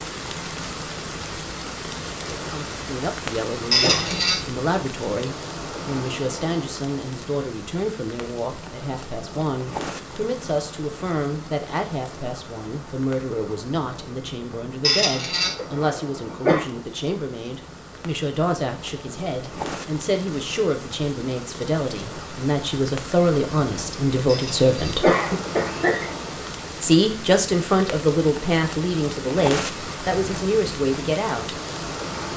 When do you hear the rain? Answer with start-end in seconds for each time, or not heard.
0.0-32.3.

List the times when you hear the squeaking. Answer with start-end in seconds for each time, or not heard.
3.7-4.4, 14.8-15.5, 24.2-24.9.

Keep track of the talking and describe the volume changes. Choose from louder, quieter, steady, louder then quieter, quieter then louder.
louder.